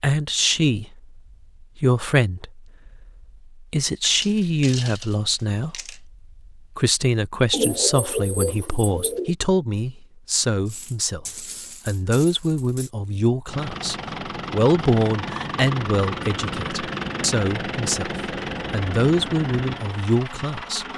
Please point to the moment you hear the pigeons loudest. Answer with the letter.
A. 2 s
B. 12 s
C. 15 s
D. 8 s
D.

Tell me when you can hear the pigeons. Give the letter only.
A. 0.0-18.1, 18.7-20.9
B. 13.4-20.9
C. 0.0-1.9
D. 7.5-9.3
D.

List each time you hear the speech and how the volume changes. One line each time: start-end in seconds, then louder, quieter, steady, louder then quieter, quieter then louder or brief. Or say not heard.
0.0-18.1 steady
18.7-20.9 brief.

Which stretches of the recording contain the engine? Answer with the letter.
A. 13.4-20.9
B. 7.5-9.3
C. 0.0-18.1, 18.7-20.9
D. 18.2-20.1
A.